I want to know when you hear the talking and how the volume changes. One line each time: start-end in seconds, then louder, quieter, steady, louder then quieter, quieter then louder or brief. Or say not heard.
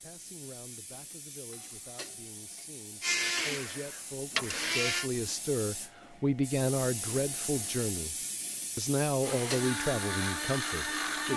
0.0-8.2 louder
8.8-11.3 brief.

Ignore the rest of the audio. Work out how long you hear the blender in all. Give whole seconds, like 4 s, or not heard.
4 s.